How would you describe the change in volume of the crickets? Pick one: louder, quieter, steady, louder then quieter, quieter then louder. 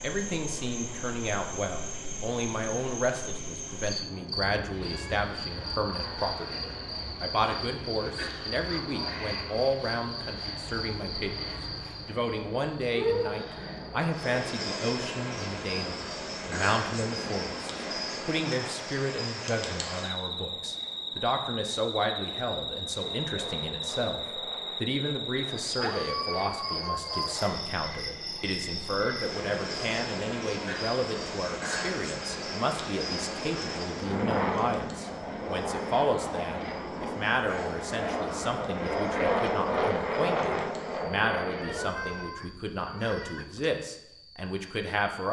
quieter.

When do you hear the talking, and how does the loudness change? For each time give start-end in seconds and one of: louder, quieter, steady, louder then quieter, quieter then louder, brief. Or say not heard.
0.0-45.2 steady.